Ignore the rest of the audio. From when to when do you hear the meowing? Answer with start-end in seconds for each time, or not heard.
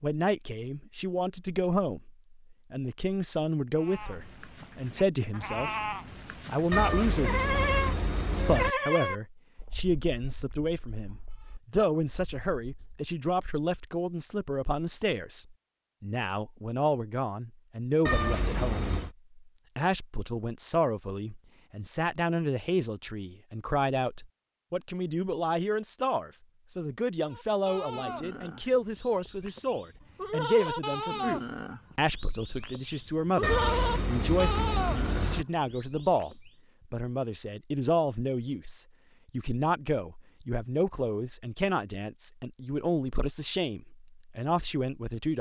6.7-8.8, 18.1-19.1, 33.4-35.5.